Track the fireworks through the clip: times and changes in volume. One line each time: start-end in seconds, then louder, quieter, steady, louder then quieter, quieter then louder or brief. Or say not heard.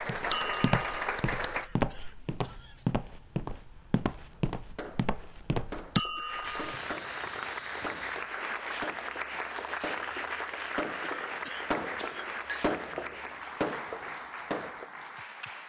4.3-14.9 louder.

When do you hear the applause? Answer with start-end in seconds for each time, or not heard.
0.0-1.7, 6.2-15.6.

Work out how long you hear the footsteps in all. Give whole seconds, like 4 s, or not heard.
8 s.